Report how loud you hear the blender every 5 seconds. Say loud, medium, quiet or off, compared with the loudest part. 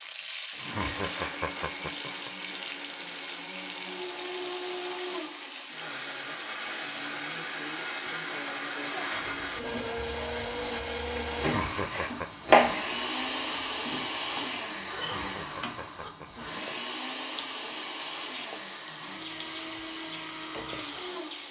medium, loud, loud, medium, medium.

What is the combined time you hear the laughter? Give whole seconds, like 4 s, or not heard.
4 s.